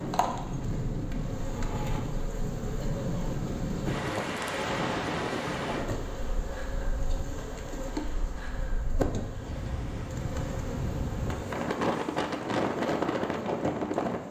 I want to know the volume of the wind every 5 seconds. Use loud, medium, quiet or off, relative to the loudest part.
loud, medium, loud.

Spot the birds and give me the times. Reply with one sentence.
The birds can't be heard in this clip.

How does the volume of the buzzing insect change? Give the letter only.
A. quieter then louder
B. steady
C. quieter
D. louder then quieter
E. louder
B.